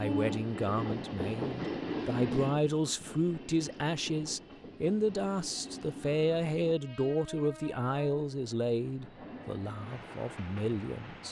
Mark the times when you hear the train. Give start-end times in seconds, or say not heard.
0.0-11.2.